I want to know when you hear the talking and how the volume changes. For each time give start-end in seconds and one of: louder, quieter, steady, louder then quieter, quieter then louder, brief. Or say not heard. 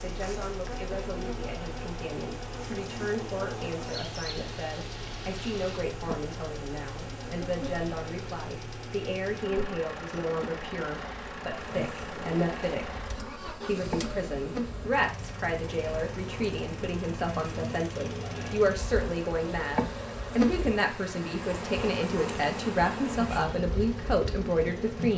0.0-25.1 louder.